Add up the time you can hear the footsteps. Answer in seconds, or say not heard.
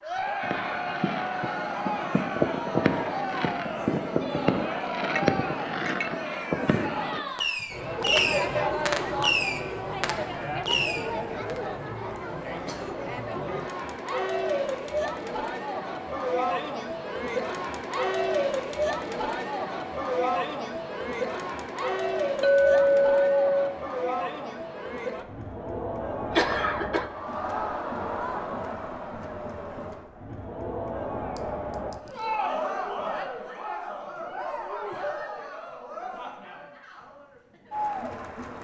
not heard.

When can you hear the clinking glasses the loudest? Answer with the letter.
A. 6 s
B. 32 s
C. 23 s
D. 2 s
C.